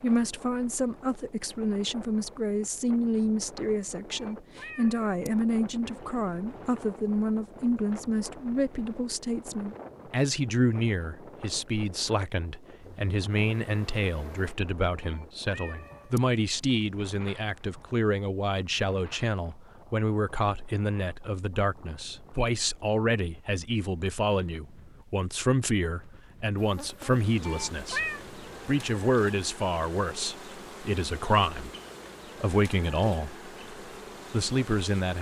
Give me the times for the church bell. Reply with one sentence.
The church bell can't be heard in this clip.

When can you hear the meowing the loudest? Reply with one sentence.
The loudest moment of the meowing is at 28 seconds.